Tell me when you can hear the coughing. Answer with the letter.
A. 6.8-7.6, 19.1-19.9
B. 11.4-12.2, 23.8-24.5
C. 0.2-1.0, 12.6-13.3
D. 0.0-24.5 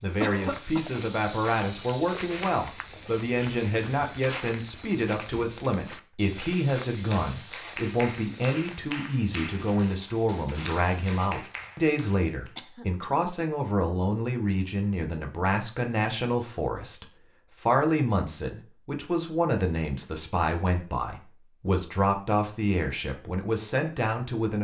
C.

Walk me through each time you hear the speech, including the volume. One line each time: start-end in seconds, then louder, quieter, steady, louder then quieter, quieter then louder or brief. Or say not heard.
0.0-24.5 steady.